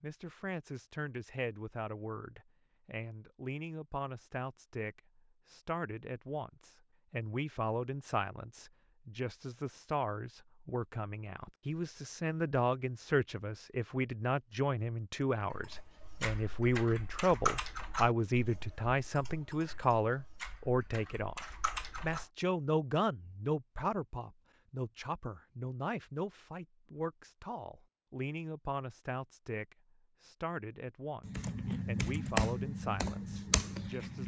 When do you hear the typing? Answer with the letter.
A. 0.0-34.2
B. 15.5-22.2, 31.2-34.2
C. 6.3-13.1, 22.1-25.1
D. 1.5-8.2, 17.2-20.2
B.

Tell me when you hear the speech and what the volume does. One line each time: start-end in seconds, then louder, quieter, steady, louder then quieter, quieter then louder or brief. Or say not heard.
0.0-34.2 louder then quieter.